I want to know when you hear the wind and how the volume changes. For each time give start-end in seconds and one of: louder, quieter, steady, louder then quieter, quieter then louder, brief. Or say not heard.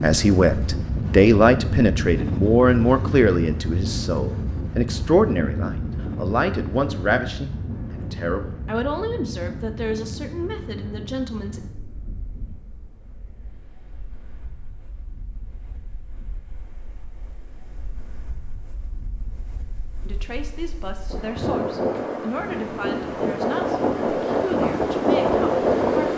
0.0-26.1 quieter then louder.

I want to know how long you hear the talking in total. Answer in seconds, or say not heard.
18 s.